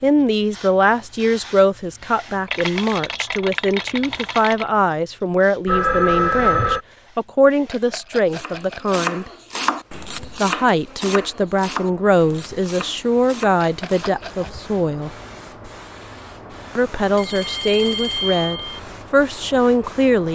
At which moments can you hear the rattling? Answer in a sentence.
You can hear the rattling from 2.5 to 4.7 s, from 7.7 to 9.0 s and from 13.6 to 14.5 s.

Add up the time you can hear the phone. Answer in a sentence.
The phone can be heard for 3 seconds in total.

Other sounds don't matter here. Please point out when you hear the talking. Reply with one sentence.
You can hear the talking from 0.0 to 9.3 s, from 10.3 to 15.2 s and from 16.8 to 20.2 s.